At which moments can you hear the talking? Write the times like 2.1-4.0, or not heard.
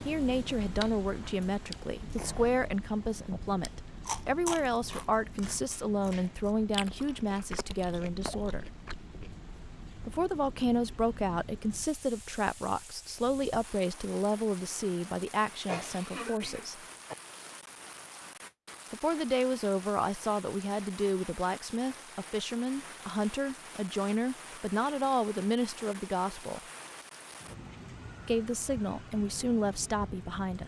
0.1-8.7, 10.1-16.8, 18.9-26.6, 28.2-30.6.